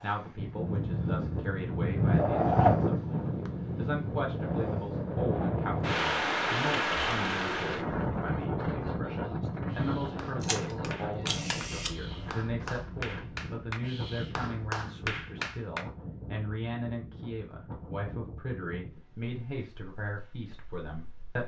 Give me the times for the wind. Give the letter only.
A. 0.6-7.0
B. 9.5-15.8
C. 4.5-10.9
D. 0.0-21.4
D.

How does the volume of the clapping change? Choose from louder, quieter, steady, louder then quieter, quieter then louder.
louder.